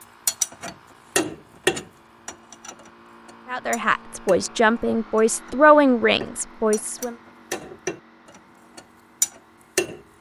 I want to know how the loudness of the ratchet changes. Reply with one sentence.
The volume of the ratchet goes down, then up.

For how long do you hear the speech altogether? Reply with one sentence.
You can hear the speech for 4 seconds altogether.